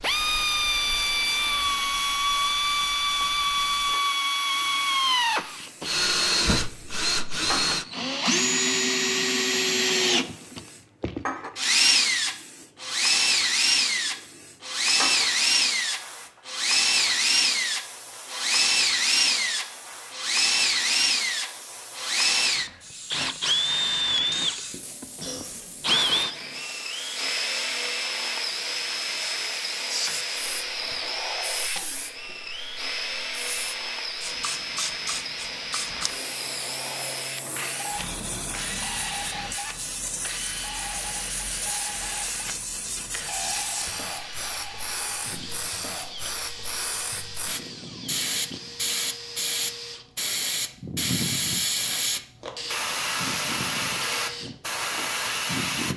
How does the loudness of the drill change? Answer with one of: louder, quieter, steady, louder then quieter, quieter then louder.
quieter.